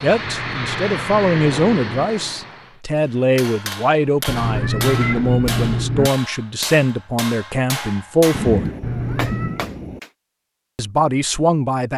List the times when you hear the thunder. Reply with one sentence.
The thunder can be heard from 8.3 to 10.0 s.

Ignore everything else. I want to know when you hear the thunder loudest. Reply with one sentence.
The loudest moment of the thunder is at 9 seconds.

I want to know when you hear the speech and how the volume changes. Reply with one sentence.
You can hear the speech from 0.0 to 8.7 s, at a steady volume; and briefly from 10.8 to 11.9 s.